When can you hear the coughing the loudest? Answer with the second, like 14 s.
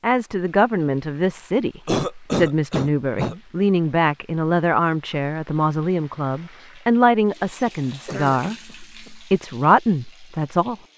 2 s.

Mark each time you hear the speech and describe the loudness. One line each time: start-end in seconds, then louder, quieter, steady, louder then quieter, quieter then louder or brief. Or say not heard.
0.0-10.8 steady.